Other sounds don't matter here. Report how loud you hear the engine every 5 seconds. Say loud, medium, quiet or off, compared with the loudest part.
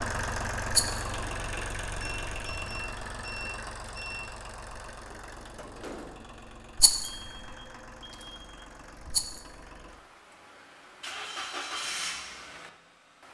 loud, medium, loud.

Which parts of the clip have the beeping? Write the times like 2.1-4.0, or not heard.
2.0-4.2, 7.0-8.7.